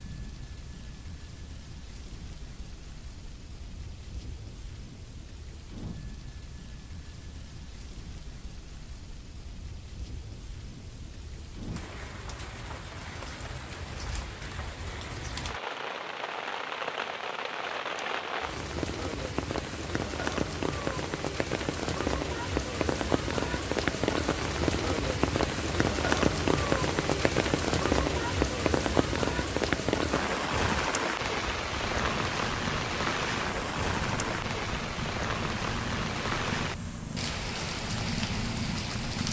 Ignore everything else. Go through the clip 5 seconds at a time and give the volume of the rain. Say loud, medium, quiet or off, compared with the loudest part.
quiet, quiet, quiet, medium, loud, loud, loud, medium.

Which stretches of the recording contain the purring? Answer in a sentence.
You can hear the purring from 31.7 to 39.2 s.